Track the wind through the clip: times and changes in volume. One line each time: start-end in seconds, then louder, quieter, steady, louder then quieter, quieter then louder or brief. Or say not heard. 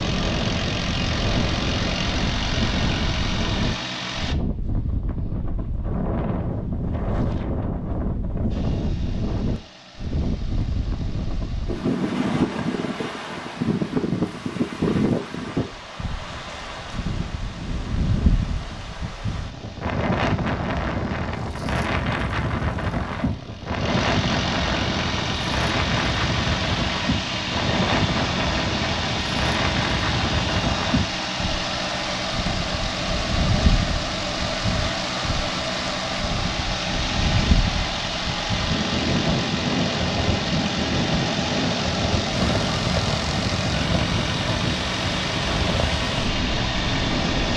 0.0-47.5 steady.